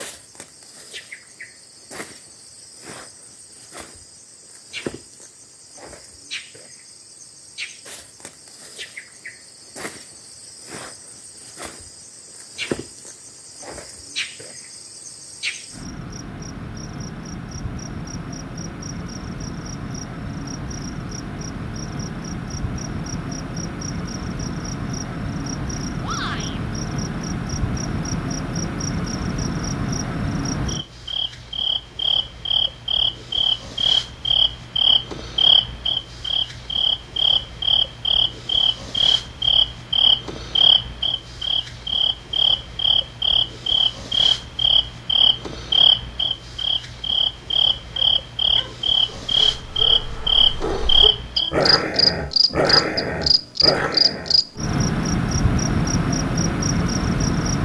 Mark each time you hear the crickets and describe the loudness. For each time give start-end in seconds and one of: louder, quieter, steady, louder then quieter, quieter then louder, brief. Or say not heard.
0.0-57.6 louder.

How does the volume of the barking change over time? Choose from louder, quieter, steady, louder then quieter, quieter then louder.
louder.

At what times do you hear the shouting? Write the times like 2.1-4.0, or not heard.
26.0-26.6.